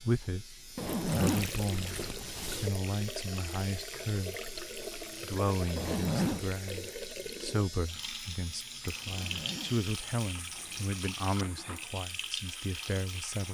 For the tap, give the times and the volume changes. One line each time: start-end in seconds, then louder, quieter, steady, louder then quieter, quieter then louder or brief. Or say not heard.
0.2-13.4 steady.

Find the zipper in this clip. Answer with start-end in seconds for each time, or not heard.
0.8-2.7, 5.8-6.5, 9.1-11.0.